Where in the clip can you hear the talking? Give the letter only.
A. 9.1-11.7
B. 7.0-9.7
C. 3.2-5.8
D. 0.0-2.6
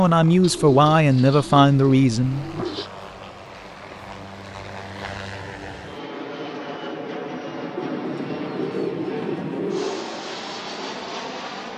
D.